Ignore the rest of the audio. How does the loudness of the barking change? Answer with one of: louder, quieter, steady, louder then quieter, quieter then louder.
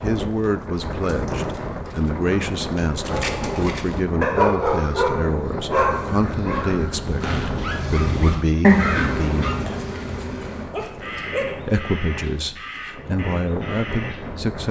louder then quieter.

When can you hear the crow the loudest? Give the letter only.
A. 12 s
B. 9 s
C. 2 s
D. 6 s
B.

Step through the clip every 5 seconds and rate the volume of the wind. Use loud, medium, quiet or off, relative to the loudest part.
loud, loud, medium.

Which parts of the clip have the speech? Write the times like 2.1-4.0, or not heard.
0.0-9.7, 11.6-14.6.